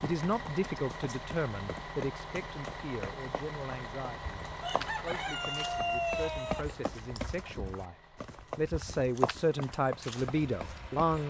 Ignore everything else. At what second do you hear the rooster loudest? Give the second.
6 s.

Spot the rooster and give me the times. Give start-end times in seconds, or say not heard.
4.6-6.7.